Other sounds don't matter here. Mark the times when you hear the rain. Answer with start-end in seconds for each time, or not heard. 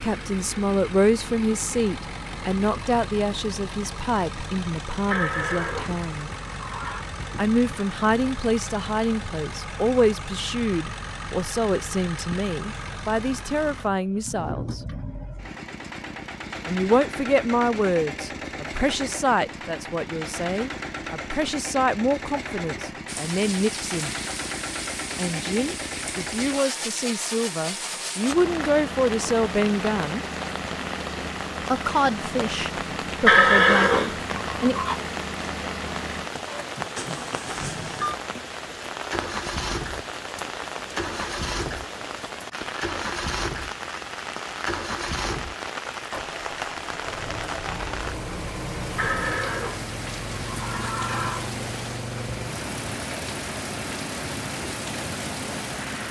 23.1-56.0.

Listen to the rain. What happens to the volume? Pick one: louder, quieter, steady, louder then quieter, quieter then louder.
steady.